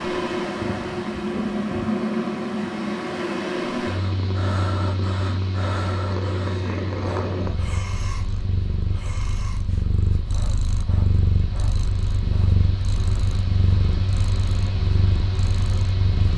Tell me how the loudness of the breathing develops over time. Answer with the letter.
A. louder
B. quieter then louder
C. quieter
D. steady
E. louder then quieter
C.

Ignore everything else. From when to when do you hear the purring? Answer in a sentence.
You can hear the purring from 0.0 to 16.3 s.